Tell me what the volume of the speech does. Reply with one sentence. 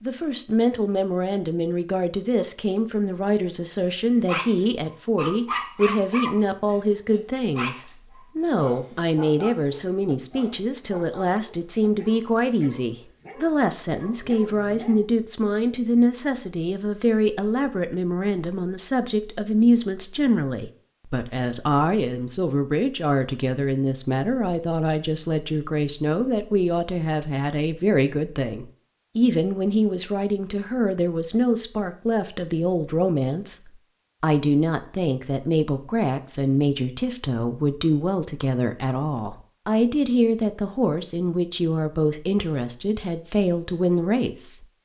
The loudness of the speech stays about the same.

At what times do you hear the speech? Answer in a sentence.
You can hear the speech from 0.0 to 44.6 s.